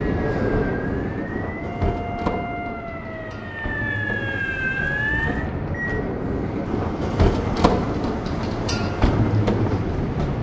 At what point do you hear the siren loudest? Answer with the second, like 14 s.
5 s.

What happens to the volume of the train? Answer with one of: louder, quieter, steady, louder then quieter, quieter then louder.
quieter then louder.